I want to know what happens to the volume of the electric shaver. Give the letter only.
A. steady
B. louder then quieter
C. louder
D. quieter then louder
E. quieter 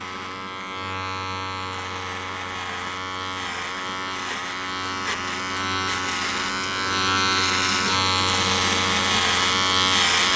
C.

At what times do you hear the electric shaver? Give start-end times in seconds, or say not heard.
0.0-10.3.